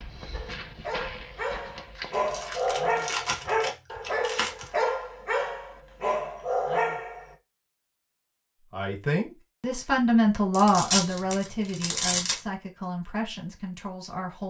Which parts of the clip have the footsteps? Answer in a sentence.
You can hear the footsteps from 0.0 to 2.9 s.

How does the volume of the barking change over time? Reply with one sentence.
The loudness of the barking goes up.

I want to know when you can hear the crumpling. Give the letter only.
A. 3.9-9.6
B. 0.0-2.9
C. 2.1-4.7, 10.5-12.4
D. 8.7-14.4
C.